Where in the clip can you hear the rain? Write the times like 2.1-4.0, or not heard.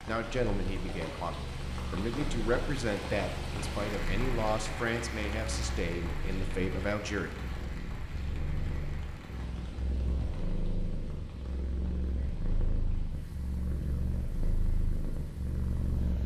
0.0-16.2.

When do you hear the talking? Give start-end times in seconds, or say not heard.
0.1-7.3.